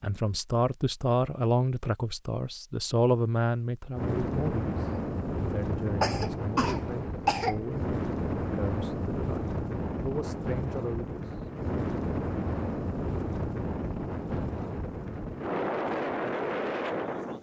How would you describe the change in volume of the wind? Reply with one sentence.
The volume of the wind stays about the same.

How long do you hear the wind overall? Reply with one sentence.
The wind can be heard for 13 seconds in total.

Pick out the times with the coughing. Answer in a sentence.
The coughing can be heard from 6.0 to 7.6 s.